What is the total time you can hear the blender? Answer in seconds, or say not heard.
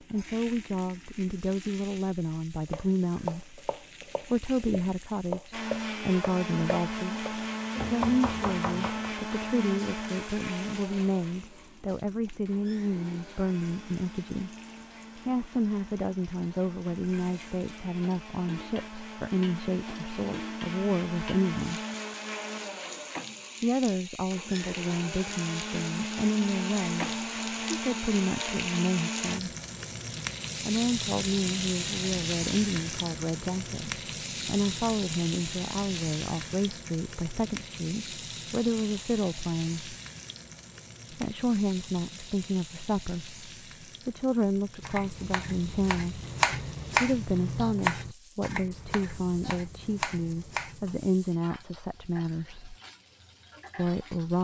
24 s.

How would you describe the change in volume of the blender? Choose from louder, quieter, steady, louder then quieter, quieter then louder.
quieter then louder.